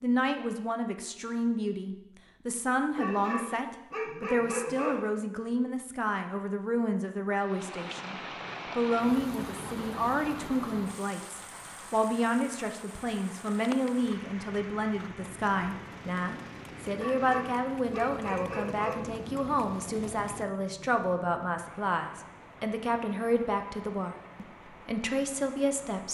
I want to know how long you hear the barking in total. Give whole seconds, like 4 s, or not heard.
4 s.